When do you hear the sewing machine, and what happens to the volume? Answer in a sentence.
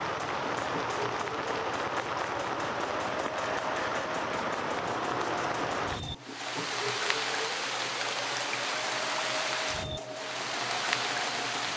You can hear the sewing machine from 0.1 to 11.7 s, at a steady volume.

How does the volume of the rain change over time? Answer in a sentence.
The volume of the rain stays about the same.